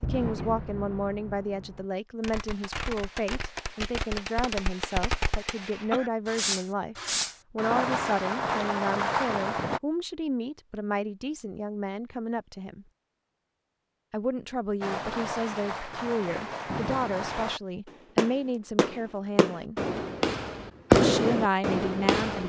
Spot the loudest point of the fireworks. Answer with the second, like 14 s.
21 s.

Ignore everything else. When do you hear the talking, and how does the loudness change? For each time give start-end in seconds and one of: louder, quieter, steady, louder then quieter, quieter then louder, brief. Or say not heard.
0.0-12.8 steady
14.1-19.8 steady
20.9-22.4 brief.